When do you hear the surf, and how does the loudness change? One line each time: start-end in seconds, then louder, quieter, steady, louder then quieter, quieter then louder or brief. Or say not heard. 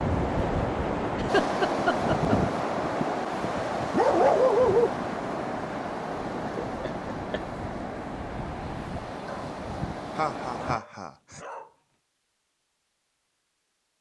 0.0-10.8 quieter.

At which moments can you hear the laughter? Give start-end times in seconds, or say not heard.
1.1-2.4, 6.5-7.4, 10.2-11.4.